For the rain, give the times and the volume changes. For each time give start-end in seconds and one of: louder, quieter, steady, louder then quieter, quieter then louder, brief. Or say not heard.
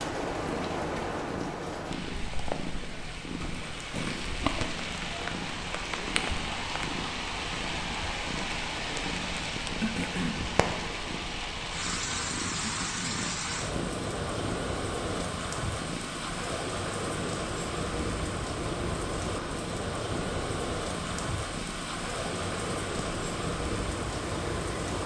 0.0-25.0 steady.